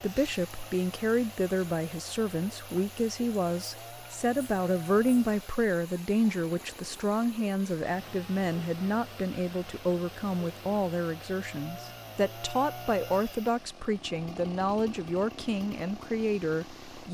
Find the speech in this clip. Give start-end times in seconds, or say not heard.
0.0-17.0.